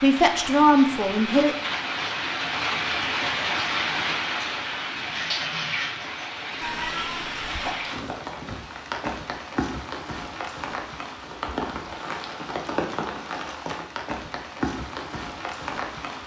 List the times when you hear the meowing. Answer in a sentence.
You can hear the meowing from 6.6 to 7.8 s.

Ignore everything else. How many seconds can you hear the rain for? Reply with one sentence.
The rain can be heard for 16 seconds in total.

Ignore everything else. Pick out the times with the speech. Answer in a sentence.
You can hear the speech from 0.0 to 1.6 s.